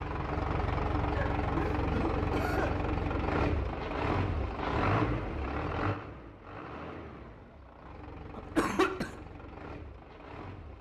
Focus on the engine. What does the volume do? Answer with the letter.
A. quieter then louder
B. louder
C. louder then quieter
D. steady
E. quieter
E.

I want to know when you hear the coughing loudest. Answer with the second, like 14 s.
9 s.